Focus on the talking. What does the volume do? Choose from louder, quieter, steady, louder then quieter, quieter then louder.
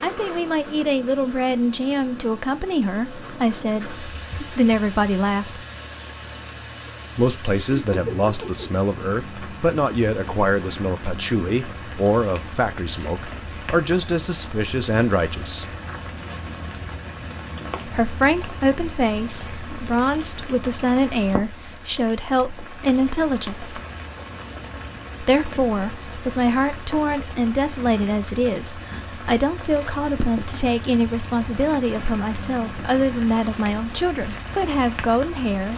steady.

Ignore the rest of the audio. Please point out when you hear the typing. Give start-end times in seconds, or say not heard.
not heard.